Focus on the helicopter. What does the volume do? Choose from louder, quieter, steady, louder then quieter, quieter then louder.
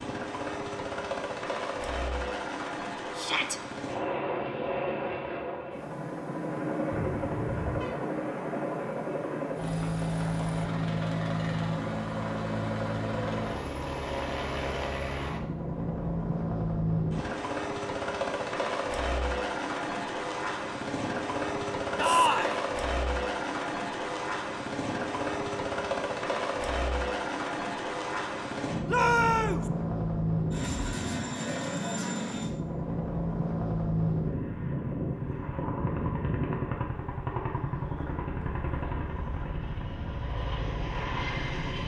steady.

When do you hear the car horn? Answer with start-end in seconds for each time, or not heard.
6.9-7.9.